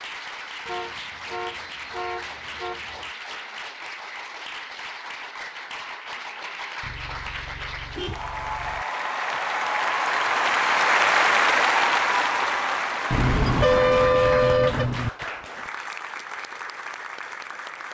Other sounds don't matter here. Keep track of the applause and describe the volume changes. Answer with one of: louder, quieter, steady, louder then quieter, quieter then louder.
louder then quieter.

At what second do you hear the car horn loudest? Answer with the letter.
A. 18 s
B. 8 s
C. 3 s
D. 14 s
D.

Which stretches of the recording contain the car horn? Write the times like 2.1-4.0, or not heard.
0.7-3.1, 6.8-8.8, 13.1-15.1.